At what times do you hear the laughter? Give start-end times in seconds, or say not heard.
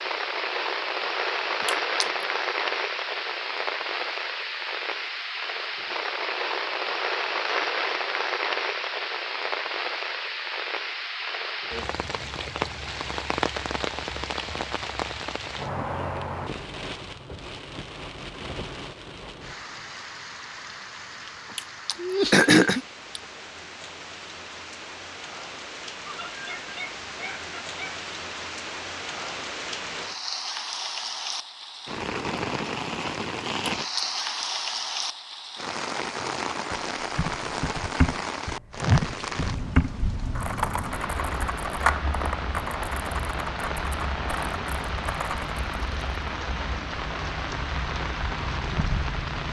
21.9-22.8, 26.1-28.0.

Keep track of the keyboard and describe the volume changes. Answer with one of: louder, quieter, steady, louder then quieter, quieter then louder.
quieter.